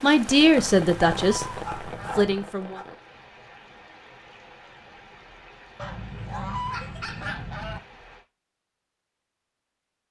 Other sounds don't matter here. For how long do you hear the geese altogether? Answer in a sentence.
The geese can be heard for 4 seconds in total.